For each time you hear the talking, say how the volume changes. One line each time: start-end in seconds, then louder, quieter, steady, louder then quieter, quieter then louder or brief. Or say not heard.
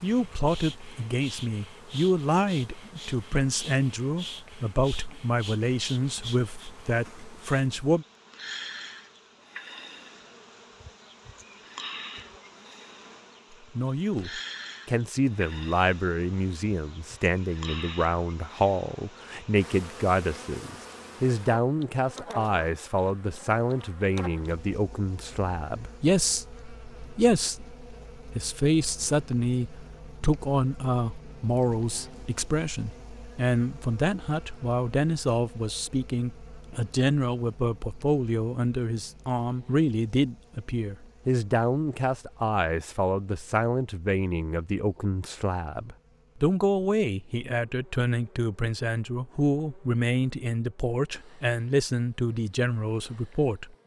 0.0-8.1 steady
13.8-53.8 steady.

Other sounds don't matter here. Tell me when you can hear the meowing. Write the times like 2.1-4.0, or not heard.
not heard.